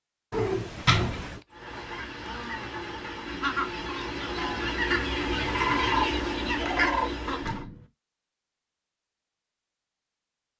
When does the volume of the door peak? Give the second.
1 s.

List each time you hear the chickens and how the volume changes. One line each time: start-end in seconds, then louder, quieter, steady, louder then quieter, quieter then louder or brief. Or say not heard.
1.5-7.7 louder.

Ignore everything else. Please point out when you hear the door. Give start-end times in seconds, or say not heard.
0.3-1.4, 7.2-7.9.